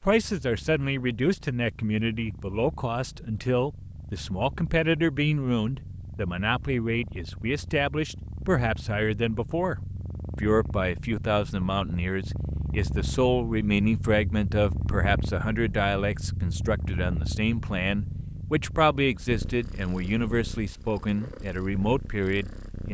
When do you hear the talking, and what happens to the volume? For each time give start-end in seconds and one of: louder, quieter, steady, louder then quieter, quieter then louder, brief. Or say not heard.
0.0-22.8 steady.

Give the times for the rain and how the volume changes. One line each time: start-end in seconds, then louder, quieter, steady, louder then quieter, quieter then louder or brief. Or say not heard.
not heard.